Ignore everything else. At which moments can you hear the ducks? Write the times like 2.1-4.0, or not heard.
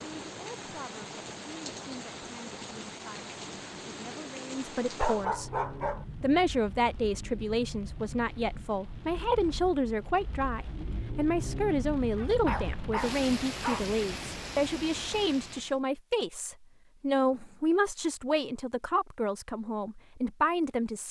not heard.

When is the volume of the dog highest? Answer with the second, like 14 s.
5 s.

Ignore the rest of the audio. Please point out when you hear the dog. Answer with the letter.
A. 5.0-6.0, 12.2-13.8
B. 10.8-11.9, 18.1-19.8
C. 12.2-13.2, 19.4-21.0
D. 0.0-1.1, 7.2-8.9
A.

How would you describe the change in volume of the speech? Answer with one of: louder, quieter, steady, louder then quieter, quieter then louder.
louder.